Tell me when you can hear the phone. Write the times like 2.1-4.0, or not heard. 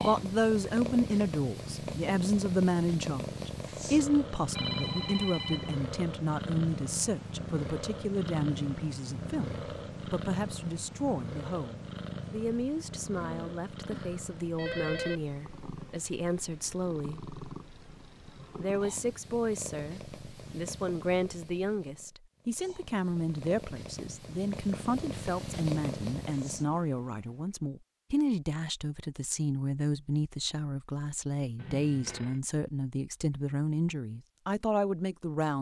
4.5-5.8, 13.2-15.2, 31.6-32.4.